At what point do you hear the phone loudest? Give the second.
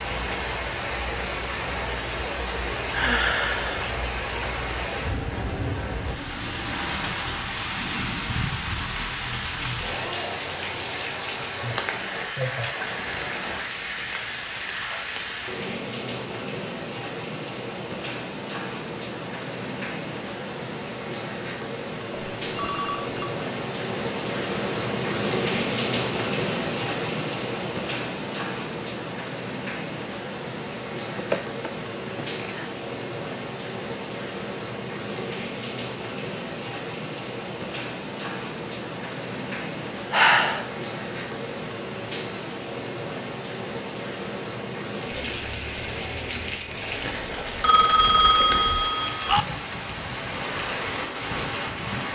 48 s.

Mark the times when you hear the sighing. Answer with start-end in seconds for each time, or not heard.
2.9-3.9, 31.1-32.5, 40.1-40.7.